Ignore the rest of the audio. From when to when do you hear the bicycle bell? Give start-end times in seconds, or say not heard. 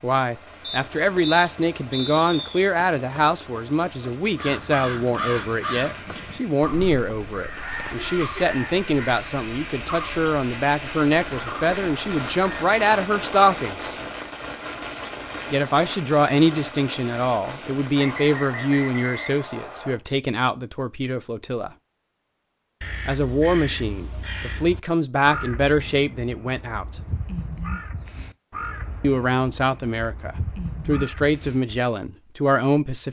25.6-26.1.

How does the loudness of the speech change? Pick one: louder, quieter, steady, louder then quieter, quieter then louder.
steady.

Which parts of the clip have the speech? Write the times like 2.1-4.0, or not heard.
0.0-13.9, 15.5-21.7, 23.1-26.9, 29.0-33.0.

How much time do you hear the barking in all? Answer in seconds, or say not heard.
not heard.